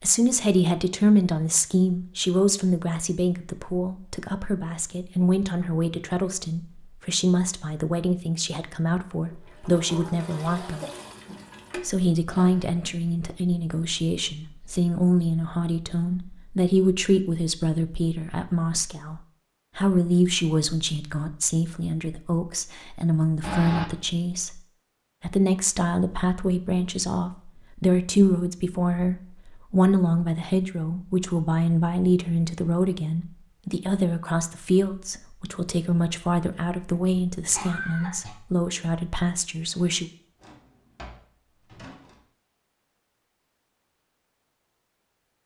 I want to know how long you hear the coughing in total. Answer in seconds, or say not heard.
3 s.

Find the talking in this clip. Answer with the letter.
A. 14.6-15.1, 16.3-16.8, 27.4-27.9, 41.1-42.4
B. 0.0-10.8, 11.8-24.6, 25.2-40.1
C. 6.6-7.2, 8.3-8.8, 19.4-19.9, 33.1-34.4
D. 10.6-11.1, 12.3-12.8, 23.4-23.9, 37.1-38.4
B.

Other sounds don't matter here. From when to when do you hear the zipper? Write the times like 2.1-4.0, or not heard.
not heard.